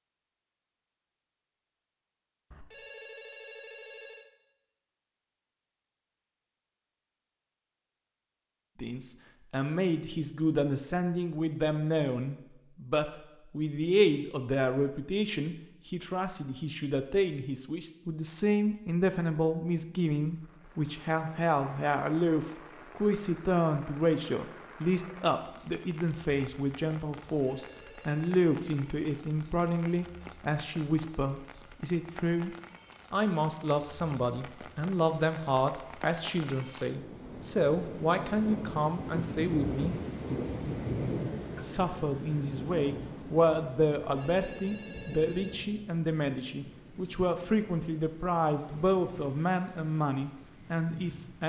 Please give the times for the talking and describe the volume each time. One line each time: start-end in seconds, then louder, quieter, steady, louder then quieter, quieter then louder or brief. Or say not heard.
8.8-40.0 steady
41.6-51.4 steady.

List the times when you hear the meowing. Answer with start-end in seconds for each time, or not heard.
not heard.